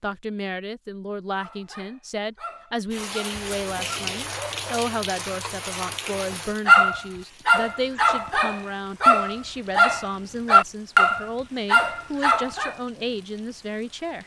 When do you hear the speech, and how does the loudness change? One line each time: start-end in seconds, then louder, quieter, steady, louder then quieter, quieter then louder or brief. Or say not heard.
0.0-14.2 steady.